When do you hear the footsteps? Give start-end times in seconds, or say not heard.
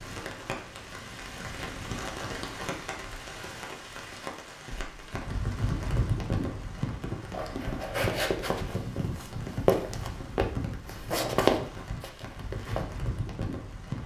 7.3-12.8.